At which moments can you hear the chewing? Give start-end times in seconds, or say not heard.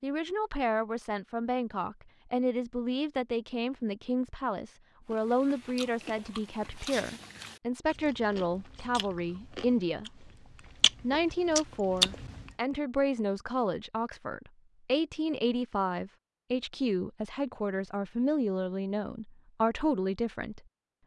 5.1-12.5.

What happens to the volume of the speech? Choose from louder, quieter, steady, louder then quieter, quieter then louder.
steady.